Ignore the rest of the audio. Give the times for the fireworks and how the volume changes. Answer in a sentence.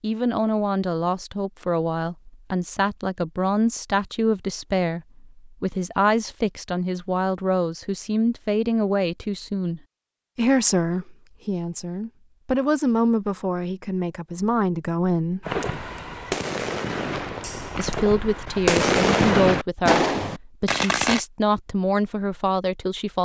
The fireworks can be heard from 15.4 to 21.2 s, getting louder.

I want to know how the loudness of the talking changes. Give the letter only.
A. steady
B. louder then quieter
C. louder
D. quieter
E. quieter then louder
A.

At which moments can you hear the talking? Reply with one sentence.
You can hear the talking from 0.0 to 15.4 s and from 17.8 to 23.2 s.